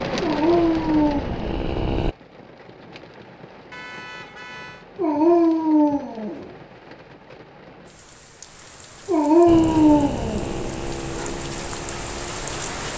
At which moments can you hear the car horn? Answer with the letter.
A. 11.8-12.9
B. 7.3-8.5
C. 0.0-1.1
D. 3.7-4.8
D.